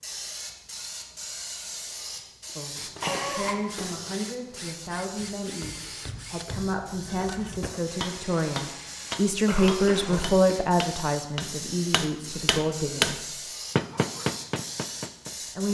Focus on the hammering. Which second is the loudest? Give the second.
13 s.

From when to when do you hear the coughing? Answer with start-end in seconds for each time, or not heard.
3.0-4.2, 9.4-10.6.